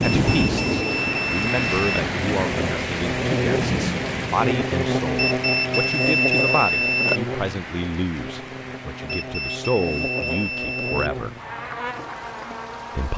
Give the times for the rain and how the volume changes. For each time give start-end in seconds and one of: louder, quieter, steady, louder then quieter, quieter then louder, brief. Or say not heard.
0.0-13.1 quieter.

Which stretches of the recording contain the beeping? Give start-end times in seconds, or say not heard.
0.1-2.0, 5.2-7.2, 9.2-11.1.